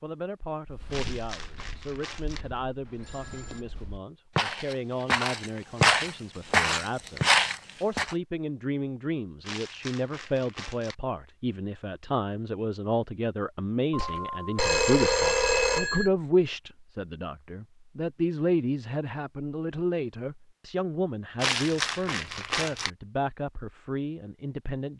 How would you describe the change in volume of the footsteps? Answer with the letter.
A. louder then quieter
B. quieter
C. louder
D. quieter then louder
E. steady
C.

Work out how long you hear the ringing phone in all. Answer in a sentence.
The ringing phone can be heard for 3 seconds in total.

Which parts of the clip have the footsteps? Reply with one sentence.
You can hear the footsteps from 0.7 to 8.2 s.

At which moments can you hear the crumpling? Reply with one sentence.
You can hear the crumpling from 0.9 to 2.5 s, from 9.4 to 10.9 s and from 21.4 to 22.9 s.